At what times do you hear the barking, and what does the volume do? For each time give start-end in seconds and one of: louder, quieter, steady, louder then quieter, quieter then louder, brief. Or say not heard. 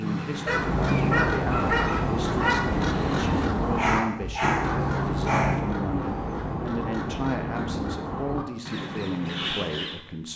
0.0-5.5 steady.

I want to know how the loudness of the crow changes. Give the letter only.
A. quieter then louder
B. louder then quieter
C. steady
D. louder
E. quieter
E.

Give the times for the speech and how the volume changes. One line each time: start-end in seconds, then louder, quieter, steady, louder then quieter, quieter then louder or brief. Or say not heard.
0.0-10.3 steady.